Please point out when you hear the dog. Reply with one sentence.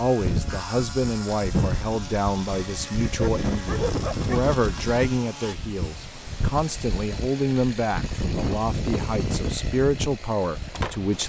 The dog can be heard from 3.1 to 4.3 s.